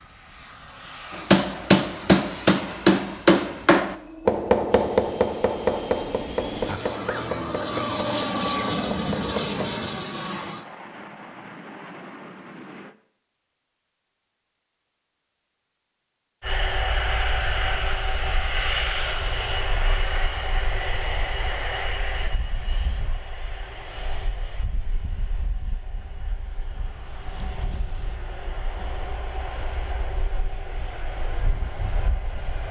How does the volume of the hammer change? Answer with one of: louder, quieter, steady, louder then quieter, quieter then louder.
quieter.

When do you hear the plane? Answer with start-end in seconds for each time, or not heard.
0.0-12.9, 16.4-32.6.